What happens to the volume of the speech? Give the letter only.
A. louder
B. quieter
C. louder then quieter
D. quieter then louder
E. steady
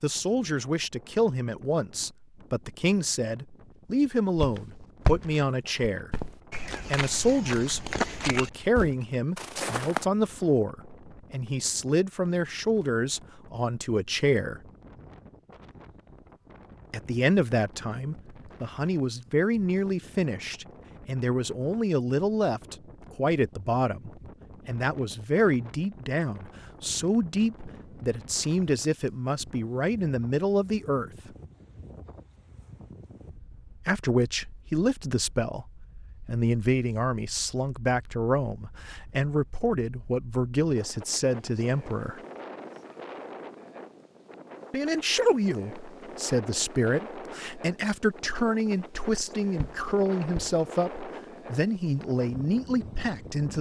E.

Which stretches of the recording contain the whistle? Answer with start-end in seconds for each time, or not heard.
not heard.